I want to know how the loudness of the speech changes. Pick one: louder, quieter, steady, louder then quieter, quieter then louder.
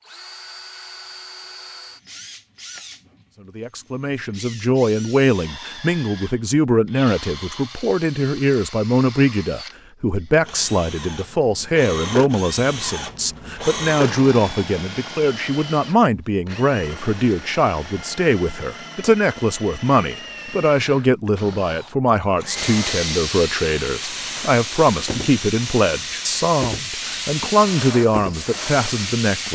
steady.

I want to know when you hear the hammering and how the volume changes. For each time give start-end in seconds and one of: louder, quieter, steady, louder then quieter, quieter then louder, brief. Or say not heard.
not heard.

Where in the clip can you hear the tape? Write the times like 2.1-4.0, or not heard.
not heard.